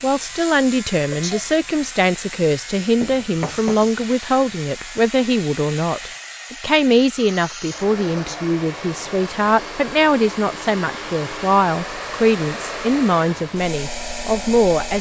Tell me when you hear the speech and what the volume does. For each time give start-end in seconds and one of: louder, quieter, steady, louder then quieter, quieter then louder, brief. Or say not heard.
0.0-14.9 steady.